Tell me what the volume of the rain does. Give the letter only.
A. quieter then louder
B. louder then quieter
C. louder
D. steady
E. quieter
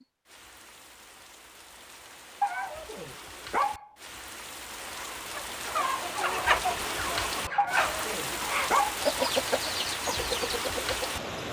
C.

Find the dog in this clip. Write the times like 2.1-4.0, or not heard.
2.4-3.9, 7.5-9.0.